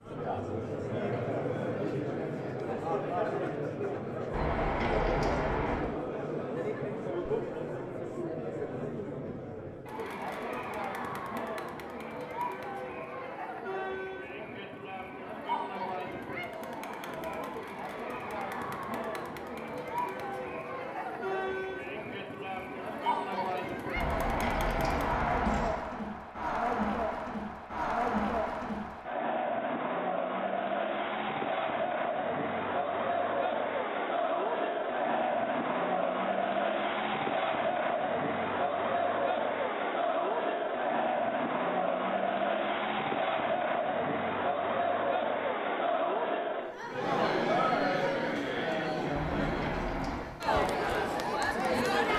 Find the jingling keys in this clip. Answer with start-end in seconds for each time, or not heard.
4.3-5.9, 23.9-25.8, 49.1-50.4.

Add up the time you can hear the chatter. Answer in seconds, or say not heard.
52 s.